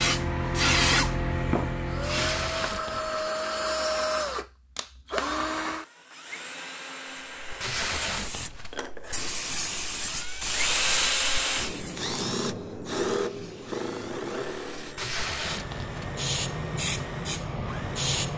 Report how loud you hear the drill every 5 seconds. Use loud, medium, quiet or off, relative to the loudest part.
loud, medium, loud, quiet.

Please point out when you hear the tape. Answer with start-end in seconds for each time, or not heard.
2.1-3.3, 7.6-8.8, 14.9-16.1.